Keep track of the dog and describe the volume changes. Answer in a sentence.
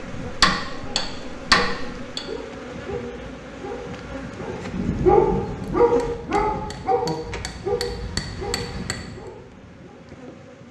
The volume of the dog goes up, then down.